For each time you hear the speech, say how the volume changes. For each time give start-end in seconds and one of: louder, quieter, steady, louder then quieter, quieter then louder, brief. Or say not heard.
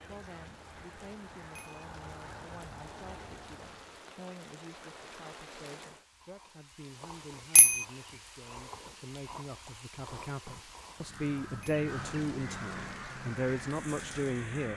0.1-14.7 louder.